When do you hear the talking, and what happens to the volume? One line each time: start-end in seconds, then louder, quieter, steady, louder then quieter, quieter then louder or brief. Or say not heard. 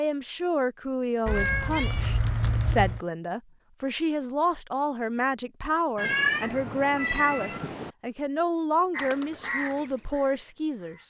0.0-11.0 steady.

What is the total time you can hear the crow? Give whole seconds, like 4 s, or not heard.
2 s.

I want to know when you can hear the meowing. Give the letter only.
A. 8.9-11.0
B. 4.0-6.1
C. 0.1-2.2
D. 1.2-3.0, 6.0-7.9
D.